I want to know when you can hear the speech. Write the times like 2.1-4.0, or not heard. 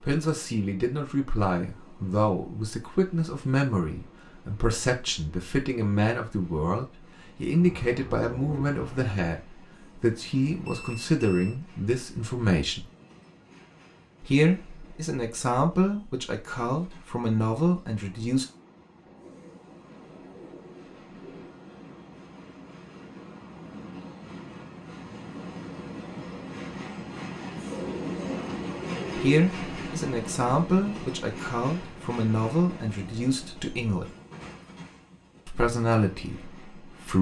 0.0-12.8, 14.2-18.4, 29.1-34.0, 35.5-37.1.